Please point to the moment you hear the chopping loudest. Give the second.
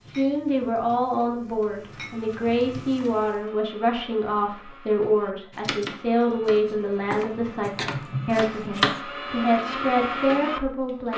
9 s.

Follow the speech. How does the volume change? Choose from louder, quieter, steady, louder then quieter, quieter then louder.
steady.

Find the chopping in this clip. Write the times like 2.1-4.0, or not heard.
5.5-9.0.